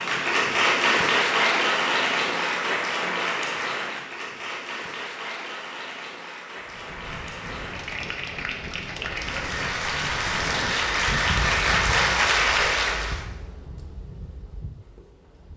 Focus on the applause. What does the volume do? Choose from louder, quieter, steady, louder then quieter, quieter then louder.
quieter then louder.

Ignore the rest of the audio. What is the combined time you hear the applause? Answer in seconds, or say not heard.
13 s.